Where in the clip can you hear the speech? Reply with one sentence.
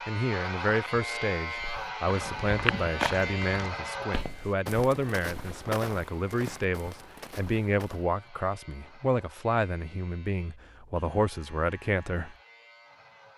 You can hear the speech from 0.1 to 12.3 s.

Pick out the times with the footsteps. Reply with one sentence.
The footsteps can be heard from 1.6 to 8.1 s.